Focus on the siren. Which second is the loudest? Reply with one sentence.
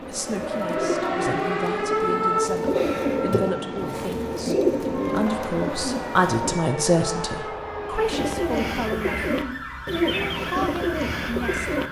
The volume of the siren peaks at 2 seconds.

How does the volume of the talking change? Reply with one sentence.
The volume of the talking goes up, then down.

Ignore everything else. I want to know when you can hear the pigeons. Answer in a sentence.
You can hear the pigeons from 0.0 to 6.6 s and from 7.9 to 11.8 s.